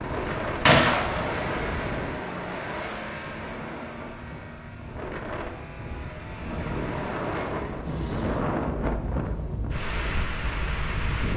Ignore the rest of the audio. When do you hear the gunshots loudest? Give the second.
1 s.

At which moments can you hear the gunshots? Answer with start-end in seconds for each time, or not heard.
0.7-2.2.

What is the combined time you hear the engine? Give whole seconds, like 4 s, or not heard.
11 s.